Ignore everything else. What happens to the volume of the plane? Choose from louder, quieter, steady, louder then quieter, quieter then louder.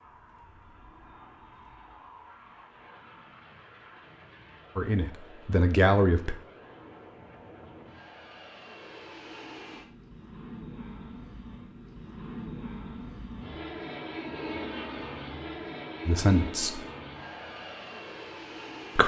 louder.